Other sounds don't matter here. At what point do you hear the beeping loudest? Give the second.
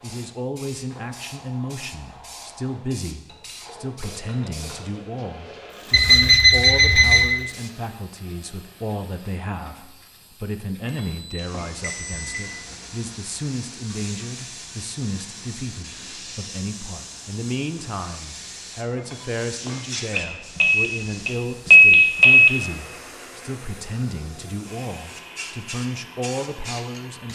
22 s.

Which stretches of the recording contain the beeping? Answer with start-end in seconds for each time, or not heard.
5.9-7.3, 10.8-12.4, 20.1-22.5.